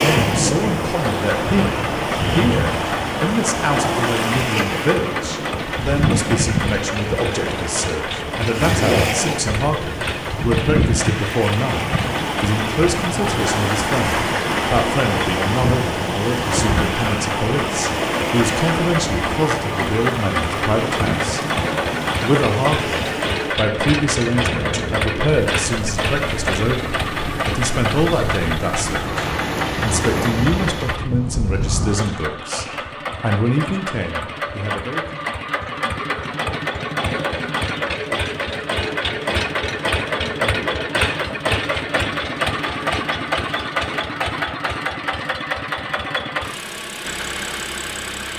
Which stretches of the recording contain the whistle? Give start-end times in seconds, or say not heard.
not heard.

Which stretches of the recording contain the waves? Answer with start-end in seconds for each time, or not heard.
0.0-32.0.